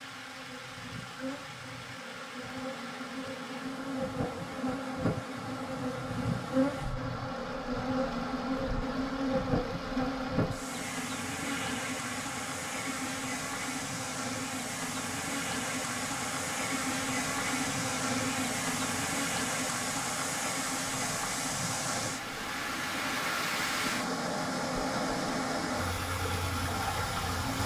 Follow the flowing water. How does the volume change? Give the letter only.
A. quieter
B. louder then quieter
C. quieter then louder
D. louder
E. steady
D.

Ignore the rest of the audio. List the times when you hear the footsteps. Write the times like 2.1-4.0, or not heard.
not heard.